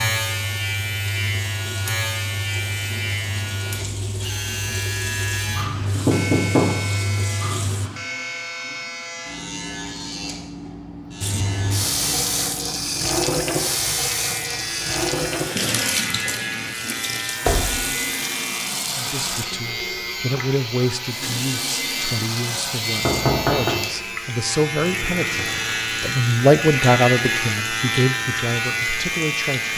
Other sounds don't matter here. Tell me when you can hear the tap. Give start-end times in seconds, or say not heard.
0.0-7.9, 11.2-29.7.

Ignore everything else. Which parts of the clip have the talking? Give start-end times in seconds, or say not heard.
18.9-29.7.